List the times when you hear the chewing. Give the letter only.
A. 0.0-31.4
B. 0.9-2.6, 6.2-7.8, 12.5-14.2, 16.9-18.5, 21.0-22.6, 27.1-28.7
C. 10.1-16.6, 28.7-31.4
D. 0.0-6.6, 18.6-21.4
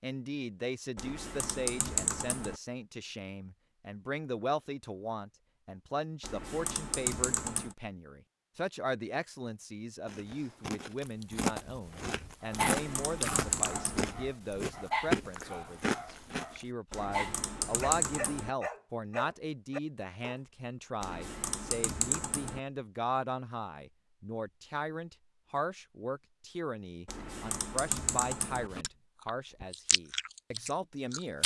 C.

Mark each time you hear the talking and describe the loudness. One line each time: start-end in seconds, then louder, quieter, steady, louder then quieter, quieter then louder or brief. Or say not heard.
0.0-31.4 steady.